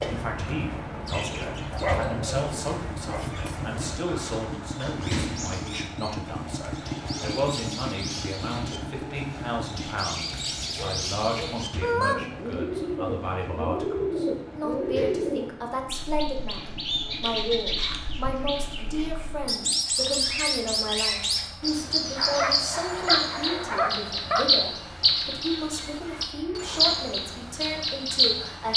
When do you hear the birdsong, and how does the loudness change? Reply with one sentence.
You can hear the birdsong from 0.0 to 28.7 s, getting louder.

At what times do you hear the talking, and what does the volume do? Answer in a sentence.
The talking can be heard from 0.1 to 28.7 s, at a steady volume.